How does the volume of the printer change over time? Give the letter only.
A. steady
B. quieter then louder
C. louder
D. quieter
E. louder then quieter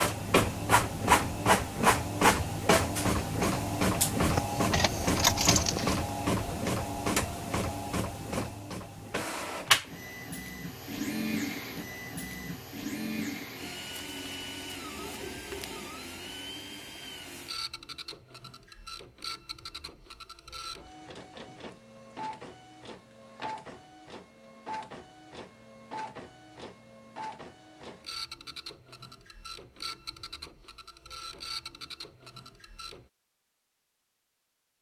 D.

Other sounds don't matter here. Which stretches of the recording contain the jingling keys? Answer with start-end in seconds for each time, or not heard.
4.2-6.0.